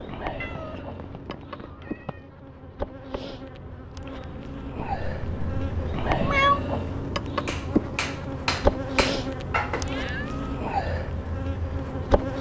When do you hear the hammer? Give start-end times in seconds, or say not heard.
7.5-10.0.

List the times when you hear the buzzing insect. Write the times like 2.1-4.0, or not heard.
0.0-12.3.